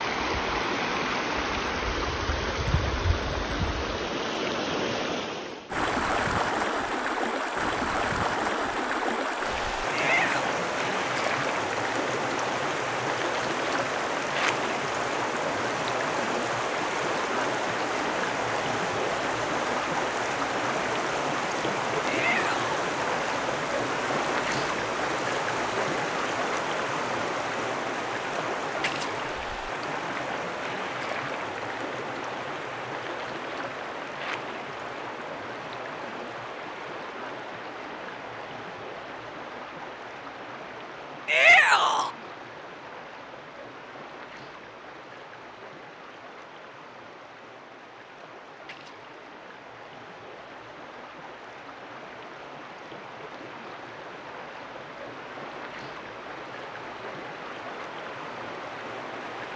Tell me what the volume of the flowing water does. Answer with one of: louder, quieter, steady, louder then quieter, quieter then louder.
quieter.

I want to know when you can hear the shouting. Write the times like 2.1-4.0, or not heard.
9.9-10.5, 22.1-22.8, 41.2-42.1.